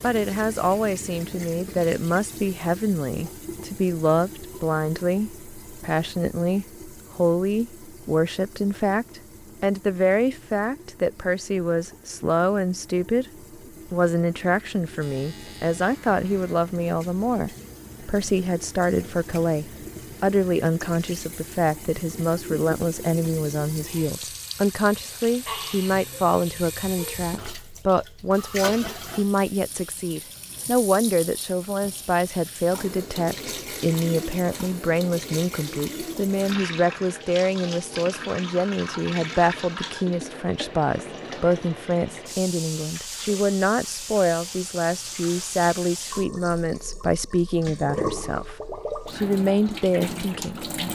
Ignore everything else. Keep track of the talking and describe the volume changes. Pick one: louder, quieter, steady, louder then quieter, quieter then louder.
steady.